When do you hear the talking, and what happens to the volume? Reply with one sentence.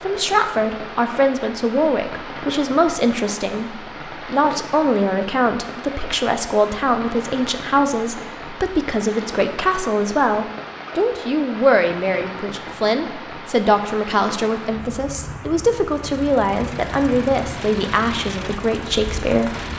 You can hear the talking from 0.0 to 19.6 s, at a steady volume.